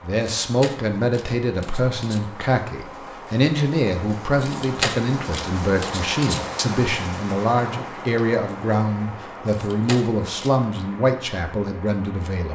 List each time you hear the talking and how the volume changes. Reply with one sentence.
The talking can be heard from 0.0 to 12.5 s, at a steady volume.